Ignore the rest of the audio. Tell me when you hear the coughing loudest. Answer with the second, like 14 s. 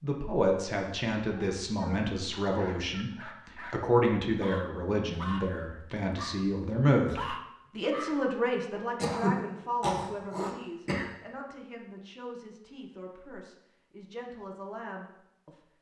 9 s.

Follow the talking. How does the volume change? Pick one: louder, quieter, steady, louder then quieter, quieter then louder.
quieter.